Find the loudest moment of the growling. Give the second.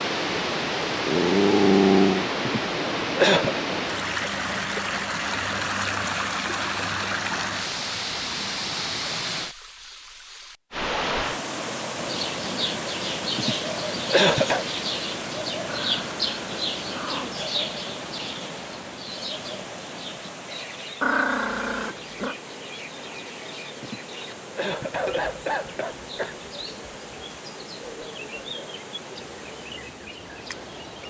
2 s.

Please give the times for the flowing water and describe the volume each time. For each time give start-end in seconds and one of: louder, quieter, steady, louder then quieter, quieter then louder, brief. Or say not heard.
0.0-31.0 quieter.